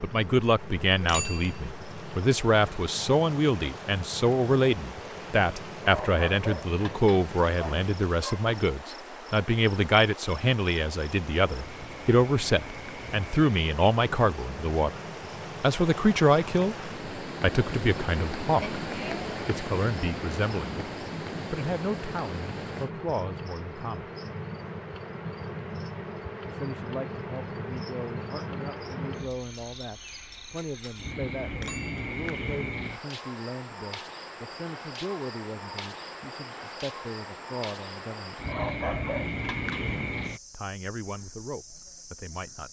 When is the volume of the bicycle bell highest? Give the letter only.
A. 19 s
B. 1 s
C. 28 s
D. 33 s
B.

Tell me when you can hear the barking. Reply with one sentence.
You can hear the barking from 5.8 to 8.4 s and from 38.5 to 39.9 s.